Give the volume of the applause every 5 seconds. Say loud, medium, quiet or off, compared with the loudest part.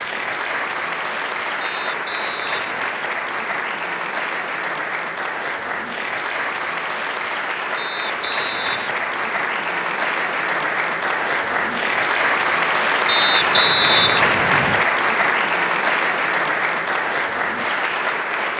medium, medium, loud, loud.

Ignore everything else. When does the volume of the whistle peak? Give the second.
14 s.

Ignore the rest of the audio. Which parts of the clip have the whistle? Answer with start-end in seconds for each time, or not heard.
1.6-2.9, 7.8-9.1, 13.1-14.8.